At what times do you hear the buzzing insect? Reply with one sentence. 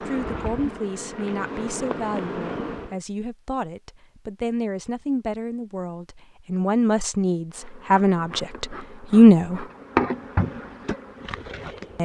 You can hear the buzzing insect from 0.0 to 3.0 s and from 7.5 to 12.0 s.